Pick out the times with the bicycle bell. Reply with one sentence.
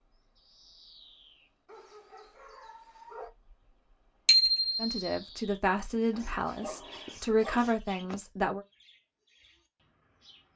The bicycle bell can be heard from 4.2 to 5.1 s.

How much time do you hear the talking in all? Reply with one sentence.
The talking can be heard for 4 seconds in total.